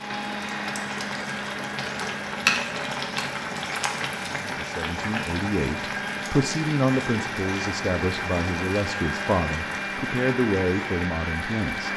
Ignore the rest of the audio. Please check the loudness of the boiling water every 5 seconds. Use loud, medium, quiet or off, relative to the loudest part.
loud, medium, medium.